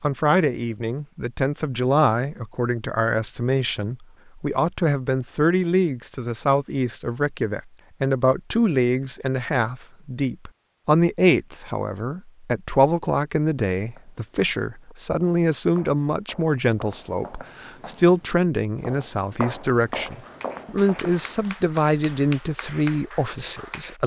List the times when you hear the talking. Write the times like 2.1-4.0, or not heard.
0.0-24.0.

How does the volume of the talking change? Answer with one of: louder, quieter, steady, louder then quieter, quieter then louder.
steady.